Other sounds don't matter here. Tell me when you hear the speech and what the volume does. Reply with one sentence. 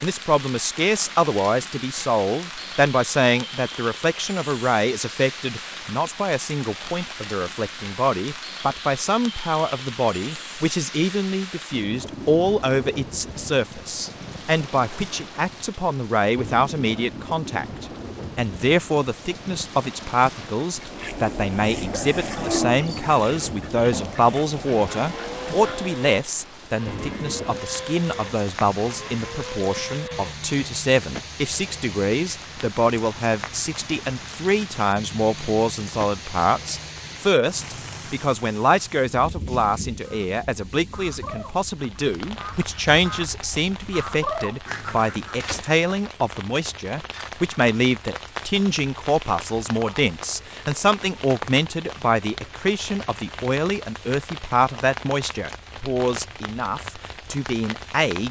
The speech can be heard from 0.0 to 58.2 s, at a steady volume.